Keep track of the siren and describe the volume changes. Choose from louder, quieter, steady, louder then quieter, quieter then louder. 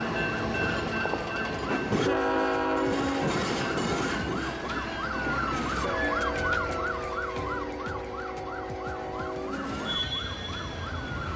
louder then quieter.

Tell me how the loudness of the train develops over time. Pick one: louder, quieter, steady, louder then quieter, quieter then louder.
quieter.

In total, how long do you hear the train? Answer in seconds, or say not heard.
11 s.